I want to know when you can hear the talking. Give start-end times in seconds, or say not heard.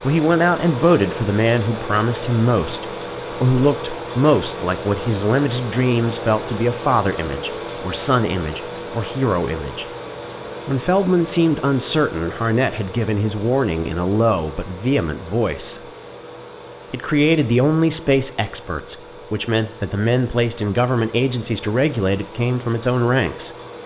0.0-9.8, 10.7-15.8, 16.9-23.6.